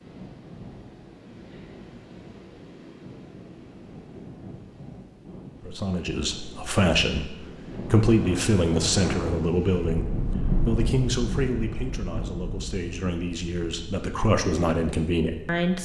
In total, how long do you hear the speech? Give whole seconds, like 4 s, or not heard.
10 s.